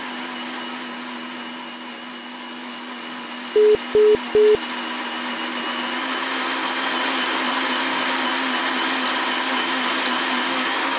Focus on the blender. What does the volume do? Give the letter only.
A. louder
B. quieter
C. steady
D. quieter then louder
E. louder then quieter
A.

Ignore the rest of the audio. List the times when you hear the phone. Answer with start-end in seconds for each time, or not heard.
3.5-4.5.